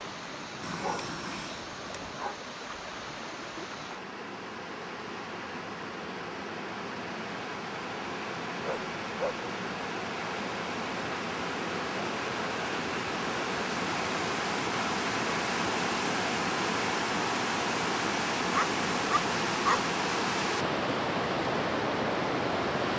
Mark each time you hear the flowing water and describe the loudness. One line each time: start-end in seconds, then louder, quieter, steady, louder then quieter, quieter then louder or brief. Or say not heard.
0.0-22.9 louder.